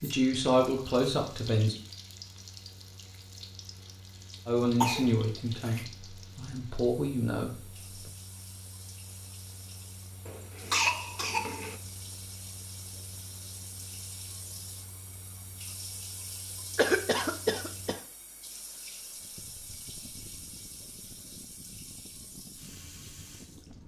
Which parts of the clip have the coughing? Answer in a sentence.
The coughing can be heard from 4.8 to 5.8 s, from 10.2 to 11.8 s and from 16.8 to 18.0 s.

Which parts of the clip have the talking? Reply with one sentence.
You can hear the talking from 0.0 to 1.8 s and from 4.5 to 8.1 s.